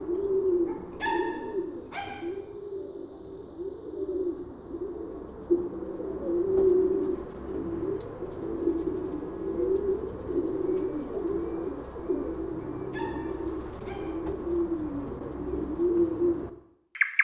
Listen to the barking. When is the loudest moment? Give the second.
1 s.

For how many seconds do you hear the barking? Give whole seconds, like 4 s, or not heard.
3 s.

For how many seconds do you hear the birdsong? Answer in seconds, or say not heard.
17 s.